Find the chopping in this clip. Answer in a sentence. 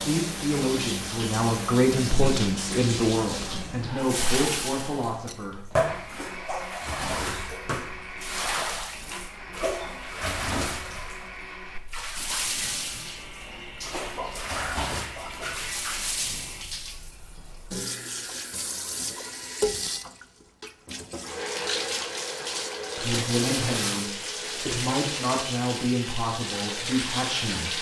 You can't hear the chopping here.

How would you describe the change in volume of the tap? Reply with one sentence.
The volume of the tap stays about the same.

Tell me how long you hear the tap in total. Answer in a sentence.
The tap can be heard for 28 seconds in total.